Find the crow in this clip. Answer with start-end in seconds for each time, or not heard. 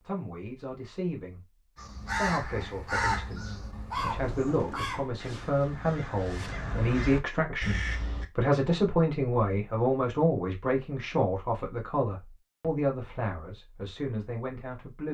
1.8-8.2.